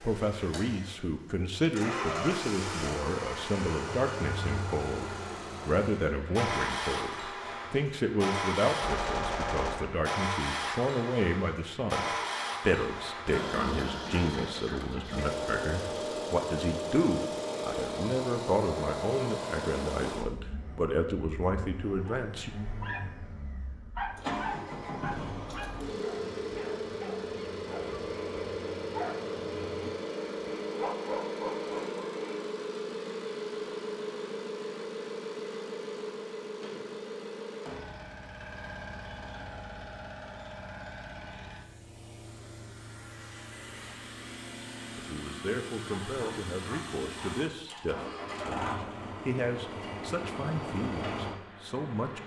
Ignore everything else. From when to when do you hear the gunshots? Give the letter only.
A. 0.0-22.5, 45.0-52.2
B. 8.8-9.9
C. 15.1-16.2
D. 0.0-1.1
B.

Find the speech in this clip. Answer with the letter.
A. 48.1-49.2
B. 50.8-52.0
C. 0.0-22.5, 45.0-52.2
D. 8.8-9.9
C.